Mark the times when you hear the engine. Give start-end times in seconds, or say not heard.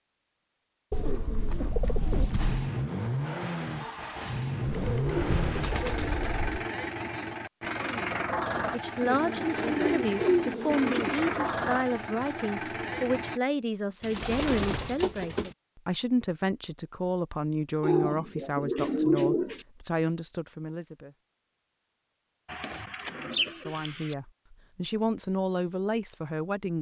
2.4-13.4.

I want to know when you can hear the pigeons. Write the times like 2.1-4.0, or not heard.
0.9-2.7, 4.7-6.7, 9.0-11.3, 14.0-15.6, 17.8-19.6, 22.4-24.1.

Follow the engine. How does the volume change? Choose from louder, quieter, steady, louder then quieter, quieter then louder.
steady.